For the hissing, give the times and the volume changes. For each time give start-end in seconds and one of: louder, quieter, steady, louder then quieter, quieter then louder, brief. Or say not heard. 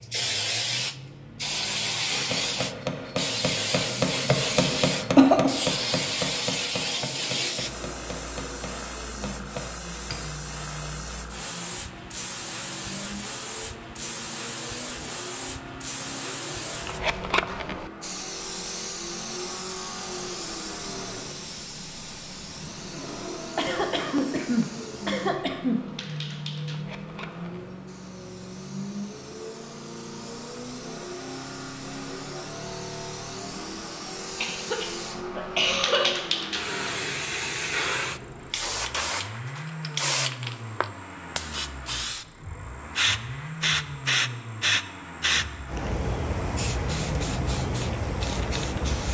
0.0-49.0 quieter then louder.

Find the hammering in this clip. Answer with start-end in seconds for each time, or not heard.
2.1-10.3.